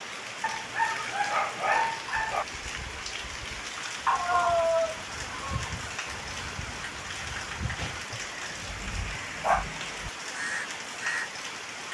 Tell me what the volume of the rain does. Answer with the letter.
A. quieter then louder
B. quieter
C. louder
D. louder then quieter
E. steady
E.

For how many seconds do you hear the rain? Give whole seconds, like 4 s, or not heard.
12 s.